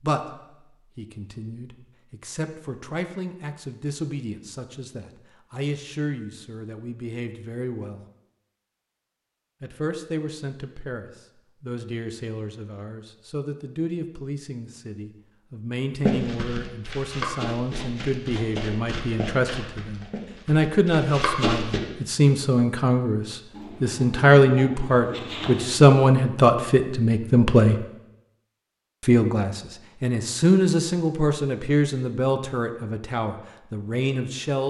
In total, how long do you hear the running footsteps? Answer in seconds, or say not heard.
6 s.